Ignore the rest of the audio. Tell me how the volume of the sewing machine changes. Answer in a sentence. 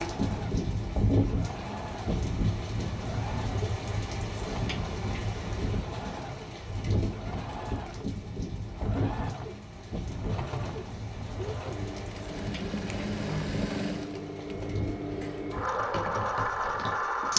The volume of the sewing machine goes up.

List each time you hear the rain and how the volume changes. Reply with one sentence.
You can hear the rain from 0.0 to 17.3 s, getting quieter.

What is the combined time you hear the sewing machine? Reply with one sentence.
The sewing machine can be heard for 17 seconds in total.